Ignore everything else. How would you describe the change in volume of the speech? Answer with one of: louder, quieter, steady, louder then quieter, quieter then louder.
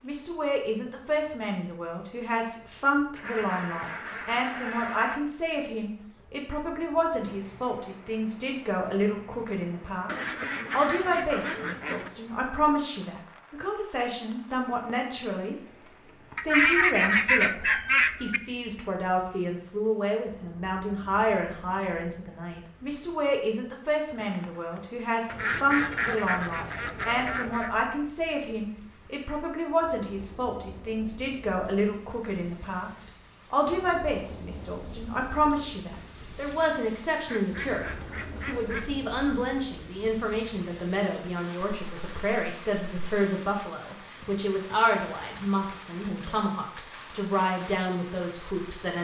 steady.